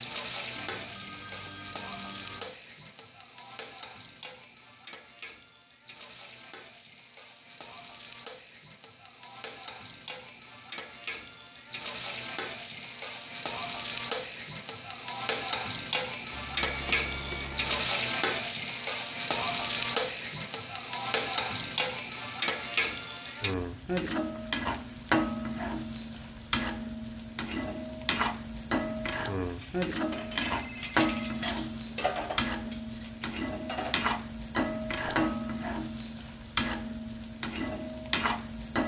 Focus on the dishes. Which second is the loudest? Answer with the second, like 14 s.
32 s.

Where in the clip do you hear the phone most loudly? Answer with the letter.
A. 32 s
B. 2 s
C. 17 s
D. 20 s
C.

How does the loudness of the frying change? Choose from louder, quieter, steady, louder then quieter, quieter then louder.
louder.